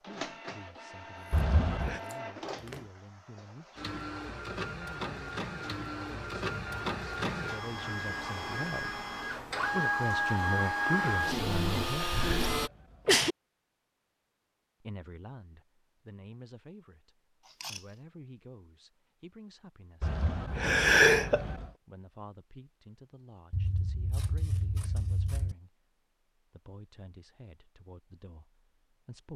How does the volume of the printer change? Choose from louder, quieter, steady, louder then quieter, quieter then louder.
louder.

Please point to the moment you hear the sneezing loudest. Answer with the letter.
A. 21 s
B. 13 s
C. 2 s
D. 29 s
A.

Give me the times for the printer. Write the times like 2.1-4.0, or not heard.
0.0-12.7.